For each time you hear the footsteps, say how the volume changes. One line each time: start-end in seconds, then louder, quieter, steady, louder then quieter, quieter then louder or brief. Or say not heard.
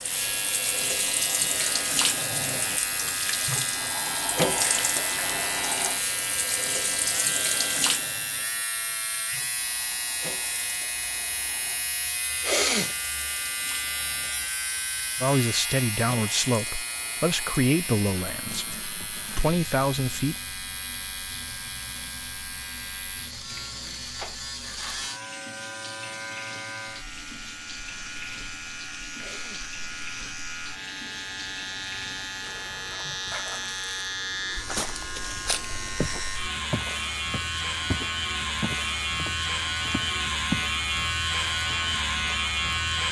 34.6-40.7 quieter.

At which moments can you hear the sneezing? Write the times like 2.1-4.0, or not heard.
12.4-12.9, 29.1-29.7.